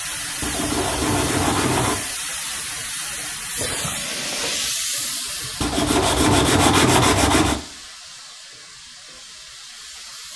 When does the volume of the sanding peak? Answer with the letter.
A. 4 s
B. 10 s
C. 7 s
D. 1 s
C.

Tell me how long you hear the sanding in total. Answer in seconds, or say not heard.
4 s.